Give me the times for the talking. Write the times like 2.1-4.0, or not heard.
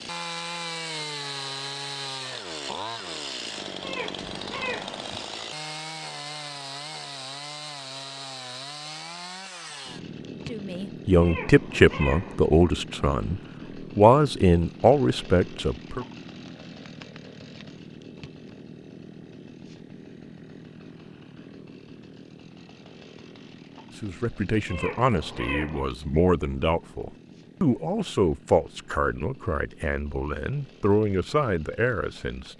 10.5-16.1, 24.0-32.5.